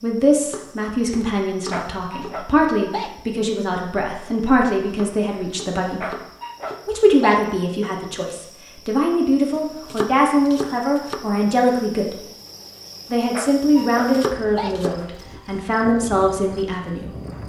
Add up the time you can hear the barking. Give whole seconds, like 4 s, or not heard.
5 s.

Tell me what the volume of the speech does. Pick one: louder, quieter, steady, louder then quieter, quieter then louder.
steady.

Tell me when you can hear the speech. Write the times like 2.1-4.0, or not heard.
0.0-6.0, 6.8-12.2, 13.1-17.1.